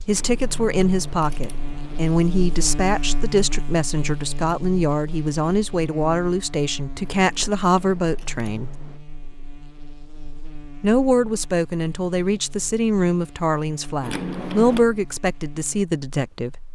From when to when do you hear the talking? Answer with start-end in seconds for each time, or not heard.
0.1-8.7, 10.8-16.6.